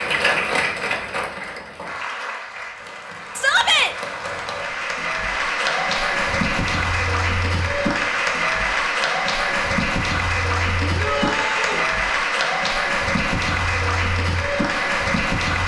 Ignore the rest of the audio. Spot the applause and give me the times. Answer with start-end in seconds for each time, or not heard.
0.0-15.6.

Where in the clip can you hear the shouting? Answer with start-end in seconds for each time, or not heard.
3.4-4.0, 10.8-11.8.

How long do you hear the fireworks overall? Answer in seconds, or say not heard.
not heard.